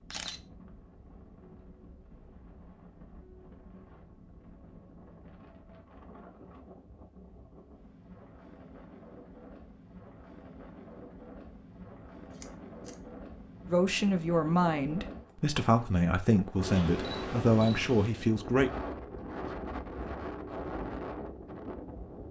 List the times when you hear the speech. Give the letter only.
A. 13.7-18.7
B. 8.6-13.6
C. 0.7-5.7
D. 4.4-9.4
A.